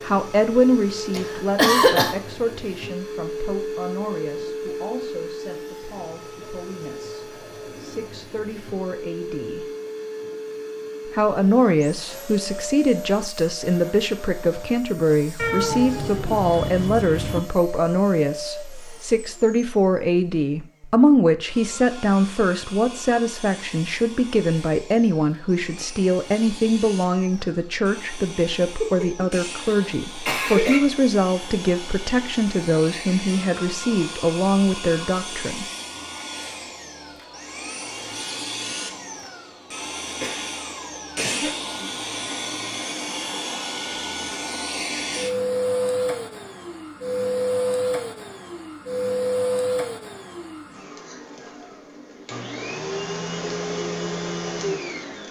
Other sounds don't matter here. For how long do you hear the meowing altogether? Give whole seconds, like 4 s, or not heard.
2 s.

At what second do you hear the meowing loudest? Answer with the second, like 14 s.
16 s.